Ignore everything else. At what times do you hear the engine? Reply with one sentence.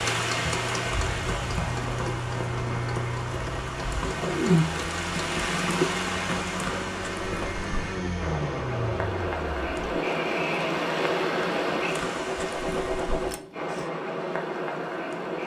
The engine can be heard from 0.0 to 13.9 s.